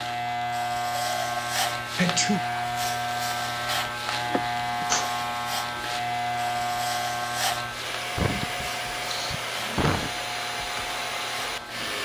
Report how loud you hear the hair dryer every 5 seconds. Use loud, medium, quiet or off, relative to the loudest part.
medium, loud, loud.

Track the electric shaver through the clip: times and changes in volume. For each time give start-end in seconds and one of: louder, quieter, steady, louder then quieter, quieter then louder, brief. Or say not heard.
0.0-12.0 quieter.